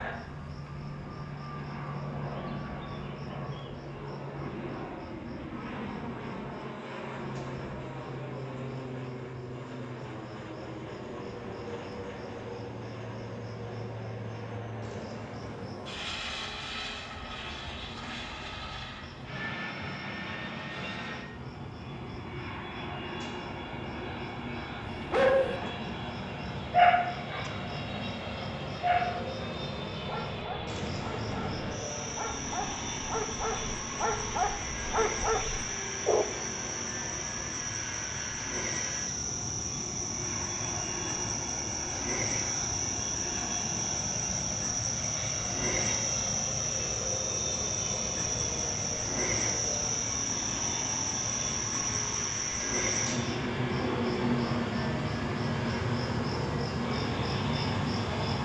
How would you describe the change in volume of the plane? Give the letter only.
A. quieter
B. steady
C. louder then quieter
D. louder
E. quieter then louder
B.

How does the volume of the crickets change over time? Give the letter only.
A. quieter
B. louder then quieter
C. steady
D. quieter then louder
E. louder
E.